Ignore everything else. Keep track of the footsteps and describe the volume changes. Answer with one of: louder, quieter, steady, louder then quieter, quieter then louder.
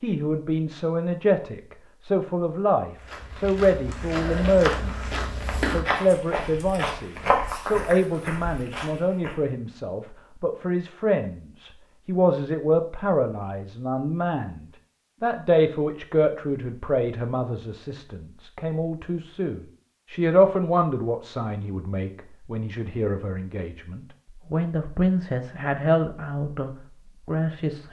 louder then quieter.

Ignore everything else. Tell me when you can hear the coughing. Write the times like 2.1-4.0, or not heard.
not heard.